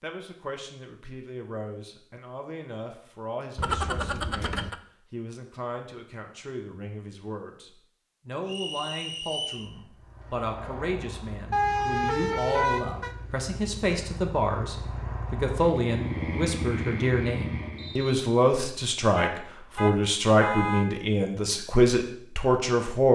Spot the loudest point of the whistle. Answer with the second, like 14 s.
9 s.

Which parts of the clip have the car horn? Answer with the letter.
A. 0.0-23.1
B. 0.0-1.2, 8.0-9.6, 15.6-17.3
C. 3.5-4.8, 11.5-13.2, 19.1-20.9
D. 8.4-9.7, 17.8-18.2
C.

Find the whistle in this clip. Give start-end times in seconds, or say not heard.
8.4-9.7, 17.8-18.2.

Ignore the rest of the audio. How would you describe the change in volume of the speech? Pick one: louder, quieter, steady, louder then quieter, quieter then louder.
louder.